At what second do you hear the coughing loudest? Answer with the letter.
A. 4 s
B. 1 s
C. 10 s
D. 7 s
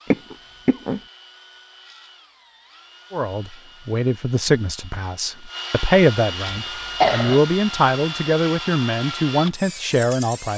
D.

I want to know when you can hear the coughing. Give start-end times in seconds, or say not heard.
0.1-1.0, 6.5-7.4.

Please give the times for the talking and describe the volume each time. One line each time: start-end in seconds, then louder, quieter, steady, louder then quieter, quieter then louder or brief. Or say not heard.
3.1-10.5 steady.